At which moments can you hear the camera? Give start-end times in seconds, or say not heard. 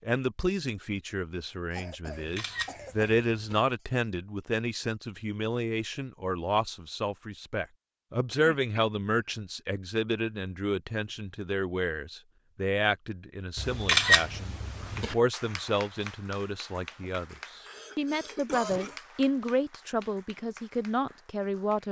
2.0-3.6, 13.6-15.2.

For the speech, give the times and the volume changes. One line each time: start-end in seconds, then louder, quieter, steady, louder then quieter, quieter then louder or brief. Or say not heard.
0.1-21.8 steady.